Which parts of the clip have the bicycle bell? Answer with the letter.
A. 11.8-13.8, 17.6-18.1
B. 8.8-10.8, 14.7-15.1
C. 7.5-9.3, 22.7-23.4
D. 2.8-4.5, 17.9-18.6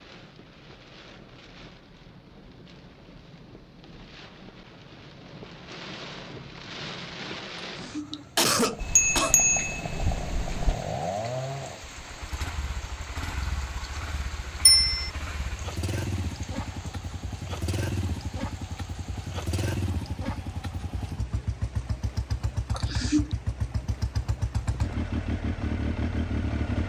B.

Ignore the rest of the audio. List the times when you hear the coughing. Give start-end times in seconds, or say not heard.
7.5-9.3, 22.7-23.4.